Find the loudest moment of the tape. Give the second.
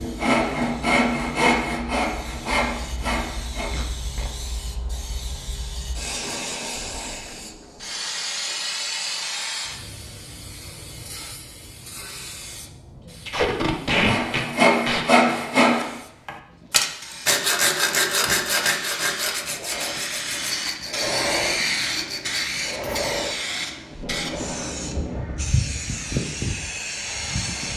14 s.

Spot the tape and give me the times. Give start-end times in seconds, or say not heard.
3.7-4.3, 13.2-15.1, 23.9-25.4.